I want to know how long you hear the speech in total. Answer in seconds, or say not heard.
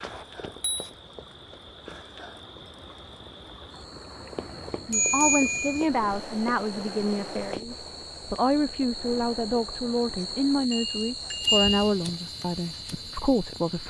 9 s.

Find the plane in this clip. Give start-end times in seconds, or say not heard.
not heard.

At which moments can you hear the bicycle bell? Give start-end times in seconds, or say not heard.
0.1-0.9, 4.9-5.9, 10.7-11.9.